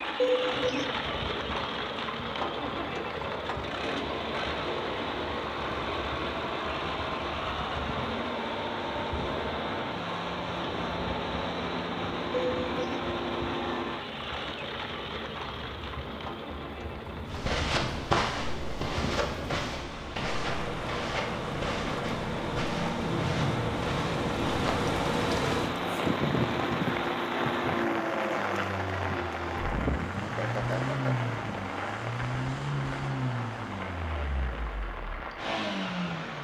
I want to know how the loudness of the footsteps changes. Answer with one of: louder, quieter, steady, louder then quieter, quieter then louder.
quieter.